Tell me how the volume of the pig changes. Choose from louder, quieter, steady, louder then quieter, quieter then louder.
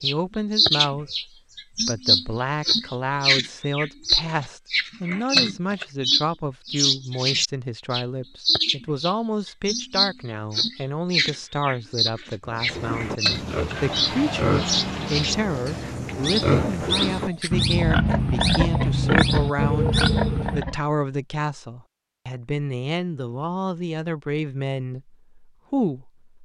louder.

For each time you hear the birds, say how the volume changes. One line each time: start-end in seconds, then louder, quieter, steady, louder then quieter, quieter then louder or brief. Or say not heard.
0.0-20.6 quieter.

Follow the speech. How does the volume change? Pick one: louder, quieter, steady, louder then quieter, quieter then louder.
steady.